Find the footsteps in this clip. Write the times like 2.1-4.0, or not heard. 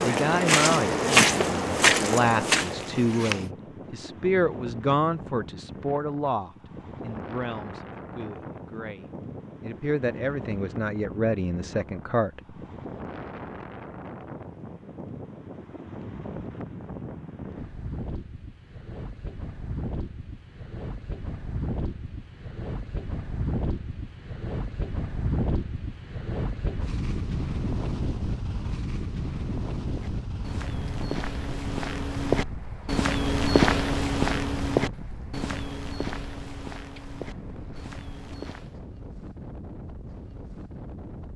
0.0-3.5, 29.9-38.8.